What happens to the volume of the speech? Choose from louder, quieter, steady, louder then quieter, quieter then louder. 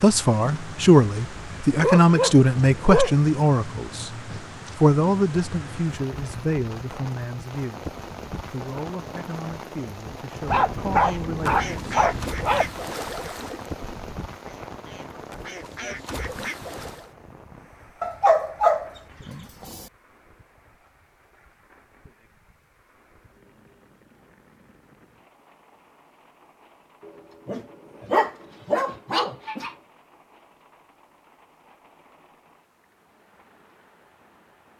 quieter.